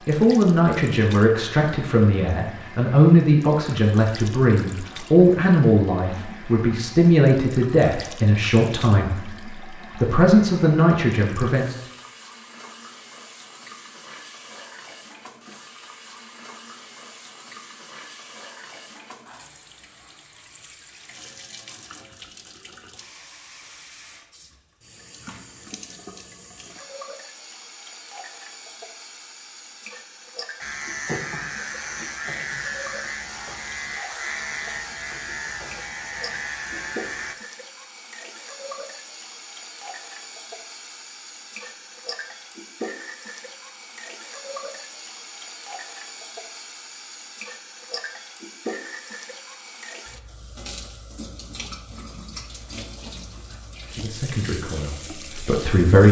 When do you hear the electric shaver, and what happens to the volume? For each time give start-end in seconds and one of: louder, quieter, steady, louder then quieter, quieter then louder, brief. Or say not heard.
30.6-37.4 steady.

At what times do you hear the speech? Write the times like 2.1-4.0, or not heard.
0.1-11.8, 54.0-56.0.